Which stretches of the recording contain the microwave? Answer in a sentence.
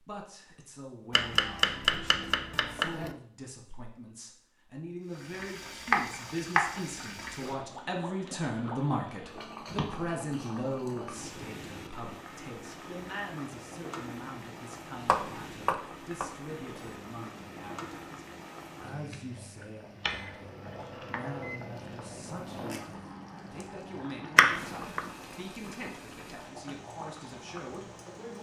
The microwave can be heard from 20.2 to 22.8 s.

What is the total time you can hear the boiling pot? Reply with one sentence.
The boiling pot can be heard for 23 seconds in total.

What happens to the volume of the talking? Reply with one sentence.
The loudness of the talking goes up, then down.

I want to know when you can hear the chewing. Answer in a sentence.
You can't hear the chewing here.